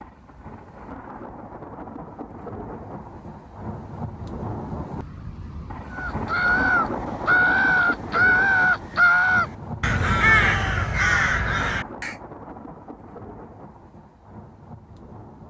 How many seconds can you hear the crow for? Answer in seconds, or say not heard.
6 s.